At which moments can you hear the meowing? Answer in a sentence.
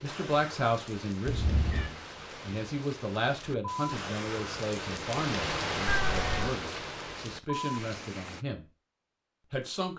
The meowing can be heard from 1.2 to 1.9 s and from 5.8 to 6.5 s.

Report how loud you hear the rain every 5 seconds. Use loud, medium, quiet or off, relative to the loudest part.
medium, loud.